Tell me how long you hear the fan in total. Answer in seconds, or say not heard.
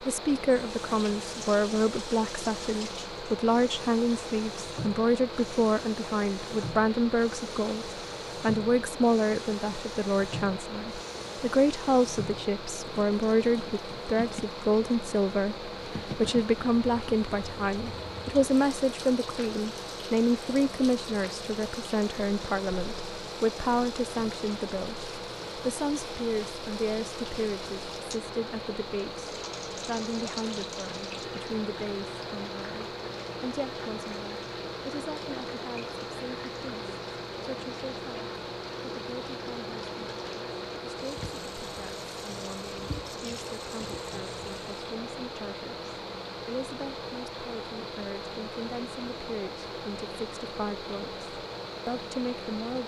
53 s.